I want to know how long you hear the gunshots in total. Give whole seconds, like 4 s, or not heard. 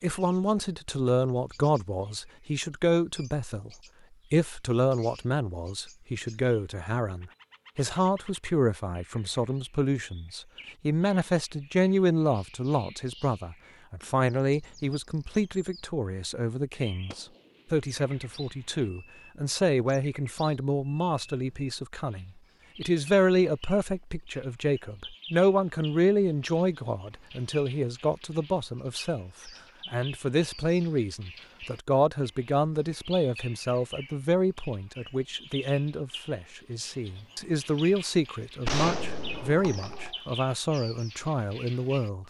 3 s.